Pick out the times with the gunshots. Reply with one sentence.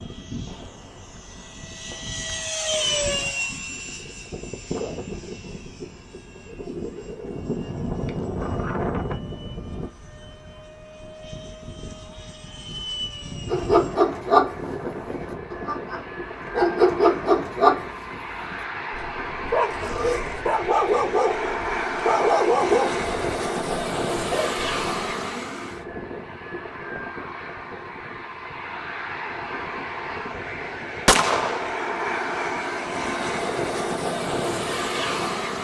The gunshots can be heard from 0.5 to 2.5 s and from 31.1 to 31.7 s.